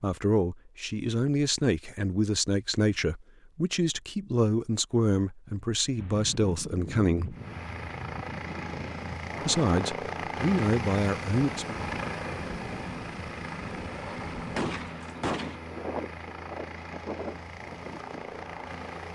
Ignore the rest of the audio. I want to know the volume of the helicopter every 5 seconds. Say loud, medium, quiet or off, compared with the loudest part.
off, loud, loud, medium.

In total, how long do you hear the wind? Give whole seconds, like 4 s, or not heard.
13 s.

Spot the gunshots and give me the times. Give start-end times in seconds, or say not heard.
14.6-15.6.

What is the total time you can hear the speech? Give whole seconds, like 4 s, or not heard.
10 s.